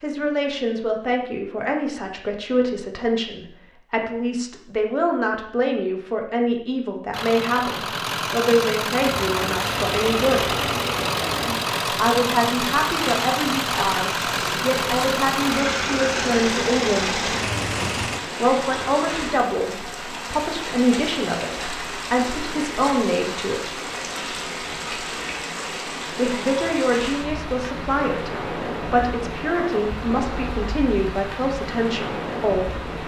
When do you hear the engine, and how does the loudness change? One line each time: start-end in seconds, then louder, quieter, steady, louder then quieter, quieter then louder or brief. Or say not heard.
7.1-18.2 steady.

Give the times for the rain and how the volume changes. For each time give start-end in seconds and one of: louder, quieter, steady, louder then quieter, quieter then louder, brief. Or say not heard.
8.9-33.0 steady.